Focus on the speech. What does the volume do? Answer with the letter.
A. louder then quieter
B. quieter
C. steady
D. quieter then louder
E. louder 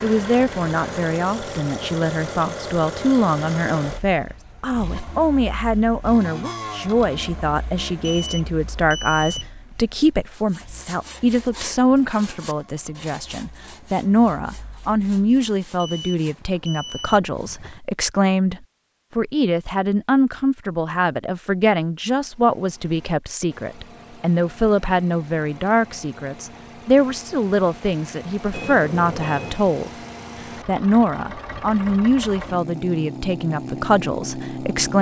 C.